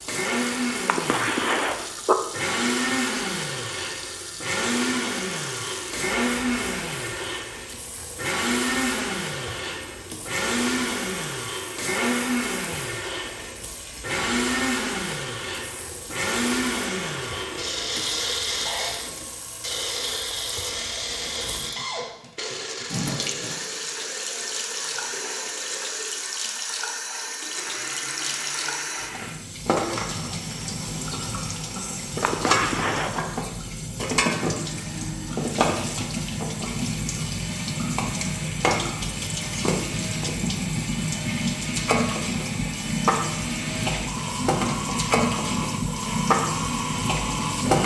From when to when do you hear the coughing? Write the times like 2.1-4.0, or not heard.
0.8-2.2, 32.2-33.4.